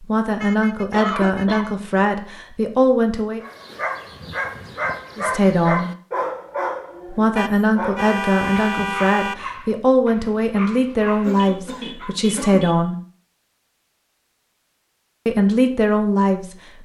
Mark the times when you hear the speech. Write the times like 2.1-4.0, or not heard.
0.0-3.4, 5.2-5.9, 7.1-12.9, 15.2-16.8.